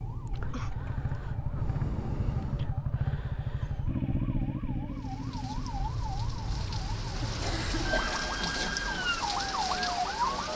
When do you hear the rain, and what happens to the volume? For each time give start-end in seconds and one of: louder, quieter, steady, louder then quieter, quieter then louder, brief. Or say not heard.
4.8-10.5 louder.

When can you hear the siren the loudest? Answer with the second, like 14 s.
10 s.